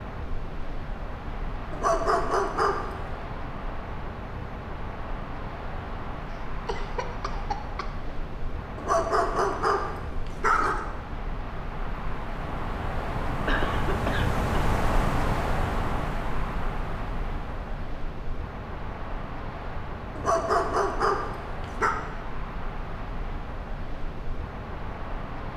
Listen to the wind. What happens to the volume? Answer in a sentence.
The volume of the wind goes up, then down.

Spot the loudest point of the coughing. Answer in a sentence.
The loudest moment of the coughing is at 14 seconds.